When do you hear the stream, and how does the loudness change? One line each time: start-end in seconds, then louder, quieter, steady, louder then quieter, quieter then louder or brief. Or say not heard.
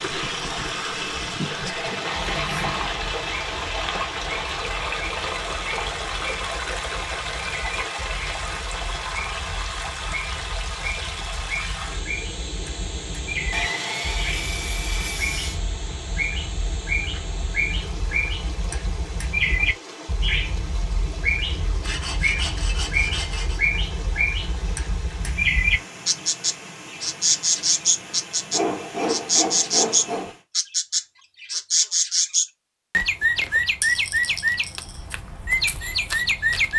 0.0-30.4 quieter.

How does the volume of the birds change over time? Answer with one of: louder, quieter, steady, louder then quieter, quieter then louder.
louder.